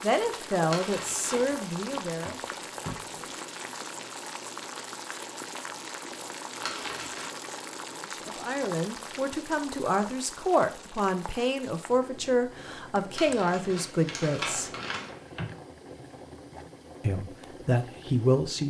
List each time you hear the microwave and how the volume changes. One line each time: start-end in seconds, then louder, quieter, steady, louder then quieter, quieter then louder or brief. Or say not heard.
not heard.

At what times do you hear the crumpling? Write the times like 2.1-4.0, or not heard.
0.7-1.6, 6.6-7.3, 13.2-15.1.